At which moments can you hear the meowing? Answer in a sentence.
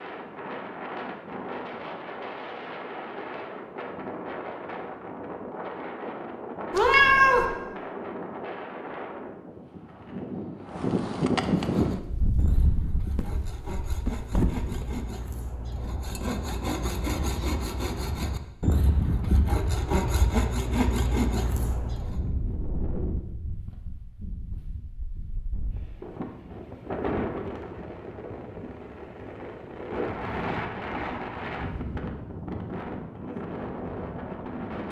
The meowing can be heard from 6.7 to 7.5 s.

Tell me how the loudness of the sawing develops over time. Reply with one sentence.
The loudness of the sawing goes up.